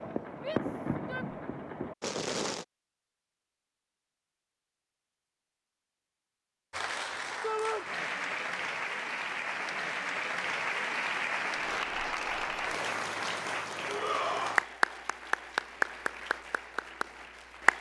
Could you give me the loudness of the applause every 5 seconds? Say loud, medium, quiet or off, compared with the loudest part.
off, loud, loud, loud.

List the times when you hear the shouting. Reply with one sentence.
The shouting can be heard from 0.3 to 1.4 s, from 7.4 to 7.8 s and from 13.8 to 14.7 s.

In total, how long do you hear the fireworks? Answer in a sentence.
You can hear the fireworks for 3 seconds altogether.